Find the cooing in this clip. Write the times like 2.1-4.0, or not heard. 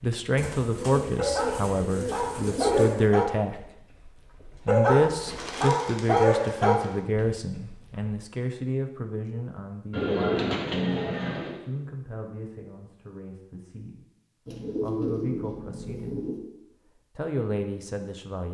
0.3-3.0, 5.2-7.0, 9.9-11.6, 14.4-16.4.